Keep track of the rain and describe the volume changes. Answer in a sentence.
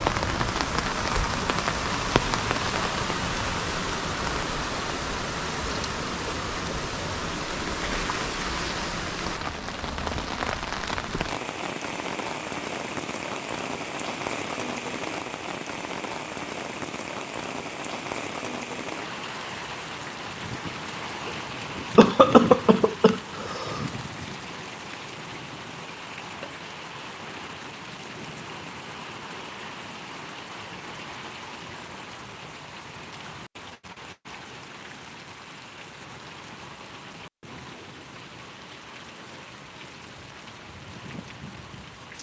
The volume of the rain goes down.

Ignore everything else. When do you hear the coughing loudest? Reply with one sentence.
The loudest moment of the coughing is at 22 seconds.